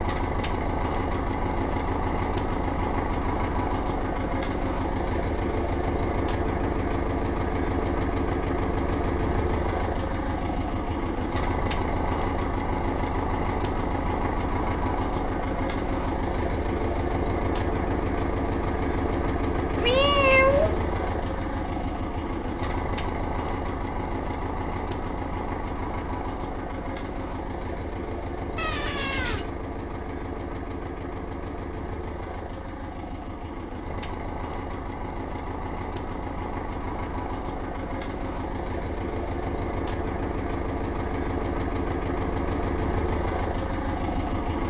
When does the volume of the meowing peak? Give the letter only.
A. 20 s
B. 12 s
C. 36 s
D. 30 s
A.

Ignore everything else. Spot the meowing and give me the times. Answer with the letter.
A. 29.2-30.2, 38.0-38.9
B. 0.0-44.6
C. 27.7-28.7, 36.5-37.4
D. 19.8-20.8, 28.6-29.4
D.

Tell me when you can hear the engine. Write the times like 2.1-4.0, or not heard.
0.0-44.6.